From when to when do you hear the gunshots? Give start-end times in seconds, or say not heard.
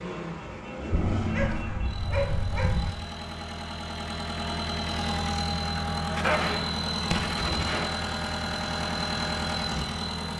6.2-8.0.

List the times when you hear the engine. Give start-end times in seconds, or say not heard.
0.0-10.3.